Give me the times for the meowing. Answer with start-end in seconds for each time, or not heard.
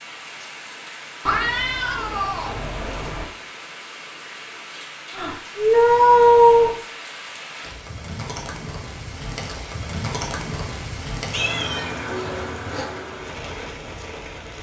1.2-3.2, 5.2-6.8, 11.3-12.9.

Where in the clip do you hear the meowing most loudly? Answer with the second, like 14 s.
6 s.